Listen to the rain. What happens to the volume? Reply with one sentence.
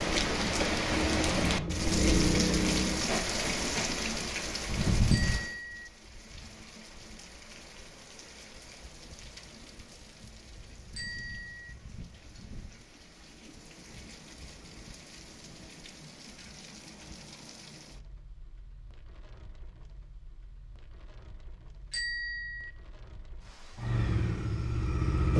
The volume of the rain goes down.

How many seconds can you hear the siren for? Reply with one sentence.
The siren can't be heard in this clip.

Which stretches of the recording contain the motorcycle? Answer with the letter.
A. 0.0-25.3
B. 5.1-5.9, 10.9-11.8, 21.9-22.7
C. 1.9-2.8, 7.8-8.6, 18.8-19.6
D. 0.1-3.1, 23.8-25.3
D.